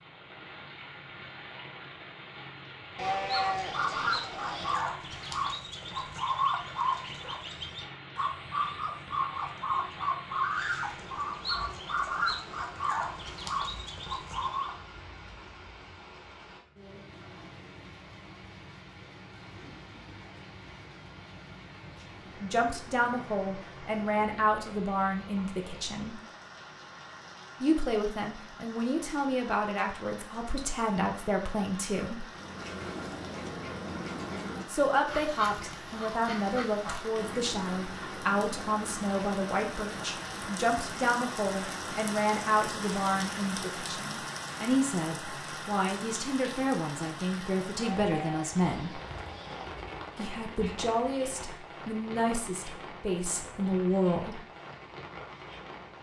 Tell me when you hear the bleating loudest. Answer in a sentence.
The volume of the bleating peaks at 3 seconds.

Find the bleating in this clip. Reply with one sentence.
You can hear the bleating from 3.0 to 4.9 s and from 48.0 to 49.7 s.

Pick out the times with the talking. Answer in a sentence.
You can hear the talking from 22.4 to 26.2 s, from 27.6 to 32.2 s, from 34.6 to 49.0 s and from 50.1 to 54.4 s.